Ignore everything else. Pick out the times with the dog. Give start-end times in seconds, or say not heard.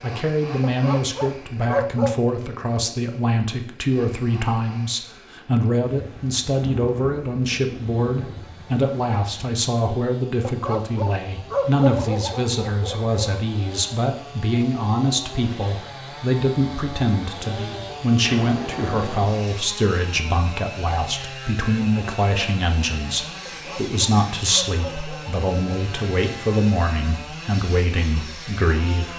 0.6-2.1, 10.4-13.2, 23.4-25.4.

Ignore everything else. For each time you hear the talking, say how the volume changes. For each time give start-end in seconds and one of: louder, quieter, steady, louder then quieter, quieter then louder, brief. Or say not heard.
0.0-29.1 steady.